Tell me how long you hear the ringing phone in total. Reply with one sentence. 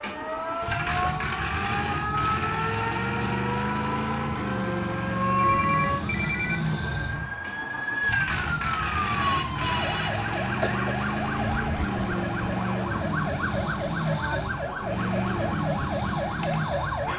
The ringing phone can be heard for 2 seconds in total.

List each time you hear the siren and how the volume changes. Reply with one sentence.
You can hear the siren from 0.0 to 17.1 s, at a steady volume.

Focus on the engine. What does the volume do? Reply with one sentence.
The volume of the engine stays about the same.